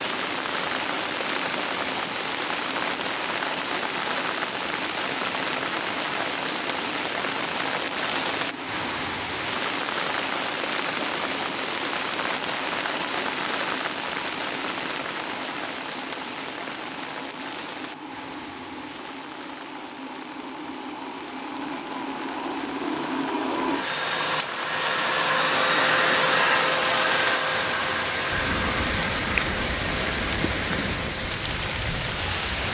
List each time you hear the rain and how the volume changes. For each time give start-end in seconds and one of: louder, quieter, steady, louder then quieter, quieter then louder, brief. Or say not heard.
0.0-32.6 quieter then louder.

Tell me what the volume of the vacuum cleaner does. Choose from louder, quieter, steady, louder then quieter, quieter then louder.
louder.